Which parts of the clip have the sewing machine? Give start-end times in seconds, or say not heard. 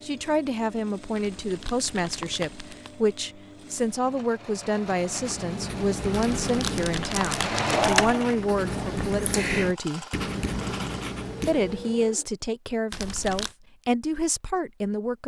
0.0-12.4.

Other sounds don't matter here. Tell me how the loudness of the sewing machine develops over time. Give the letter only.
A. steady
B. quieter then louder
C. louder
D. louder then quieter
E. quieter
D.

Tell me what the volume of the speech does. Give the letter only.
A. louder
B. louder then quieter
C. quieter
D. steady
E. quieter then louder
D.